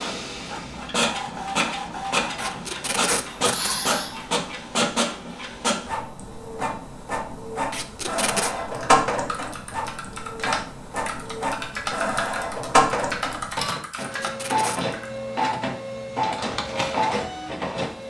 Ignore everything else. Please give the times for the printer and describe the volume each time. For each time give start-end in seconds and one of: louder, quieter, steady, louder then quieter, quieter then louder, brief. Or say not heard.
0.0-18.0 steady.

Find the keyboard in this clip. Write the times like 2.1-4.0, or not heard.
8.6-15.1.